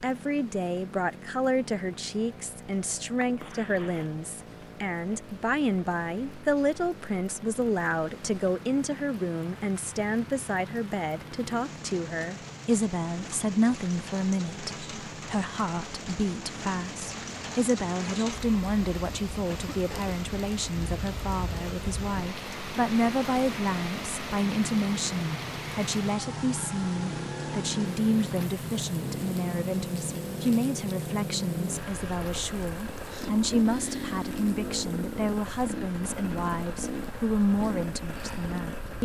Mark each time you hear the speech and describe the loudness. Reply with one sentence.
The speech can be heard from 0.0 to 39.0 s, at a steady volume.